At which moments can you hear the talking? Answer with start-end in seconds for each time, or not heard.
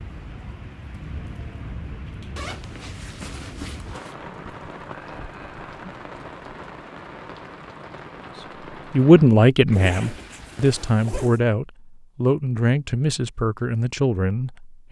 8.9-14.8.